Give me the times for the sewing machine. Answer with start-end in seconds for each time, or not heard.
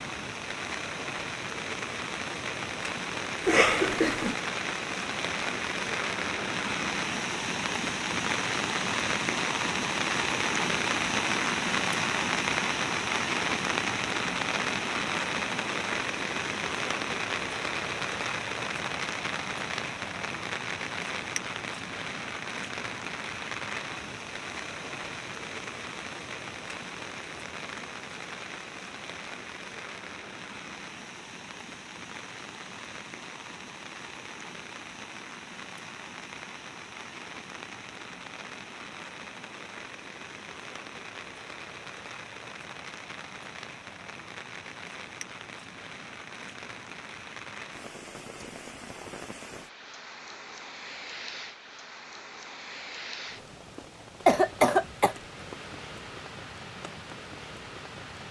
not heard.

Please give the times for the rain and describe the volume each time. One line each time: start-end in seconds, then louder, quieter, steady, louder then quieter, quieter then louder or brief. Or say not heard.
0.0-58.2 quieter.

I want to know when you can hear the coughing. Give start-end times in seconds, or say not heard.
3.5-4.3, 54.2-55.1.